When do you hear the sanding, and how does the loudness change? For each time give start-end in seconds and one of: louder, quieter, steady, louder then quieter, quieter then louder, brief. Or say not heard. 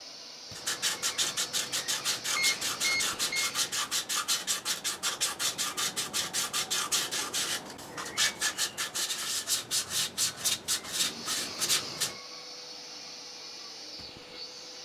0.6-12.2 steady.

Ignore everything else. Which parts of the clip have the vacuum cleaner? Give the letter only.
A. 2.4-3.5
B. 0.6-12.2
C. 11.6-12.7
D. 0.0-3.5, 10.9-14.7
D.